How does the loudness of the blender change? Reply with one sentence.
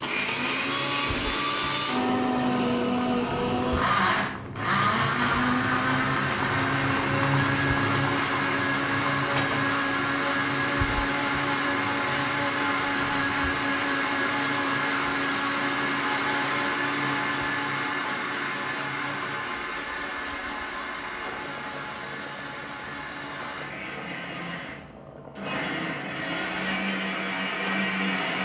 The loudness of the blender goes down.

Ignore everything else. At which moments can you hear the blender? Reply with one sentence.
You can hear the blender from 0.0 to 28.4 s.